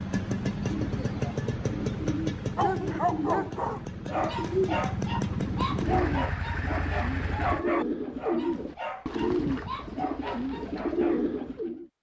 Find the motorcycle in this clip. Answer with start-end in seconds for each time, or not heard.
0.0-7.7.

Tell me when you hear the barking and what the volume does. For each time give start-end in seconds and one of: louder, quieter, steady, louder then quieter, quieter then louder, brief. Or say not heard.
2.5-11.3 quieter.